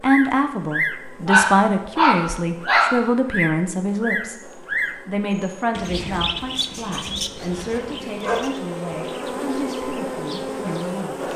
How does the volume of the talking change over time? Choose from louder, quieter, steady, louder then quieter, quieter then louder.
quieter.